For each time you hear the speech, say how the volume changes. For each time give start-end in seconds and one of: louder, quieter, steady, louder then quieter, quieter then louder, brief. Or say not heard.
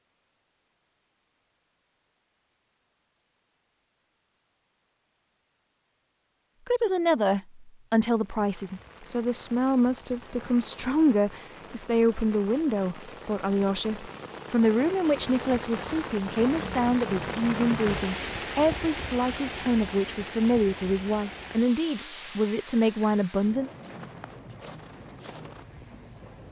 6.7-23.7 steady.